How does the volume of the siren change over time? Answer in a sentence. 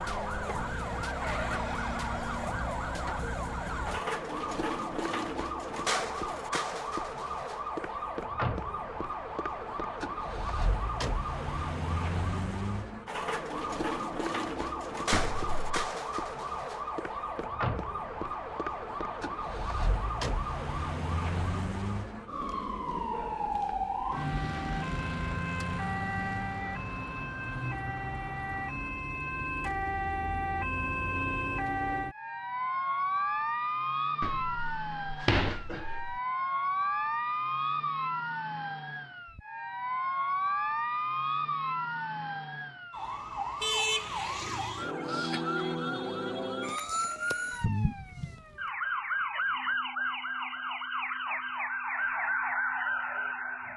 The volume of the siren stays about the same.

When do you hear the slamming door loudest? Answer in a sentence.
The loudest moment of the slamming door is at 35 seconds.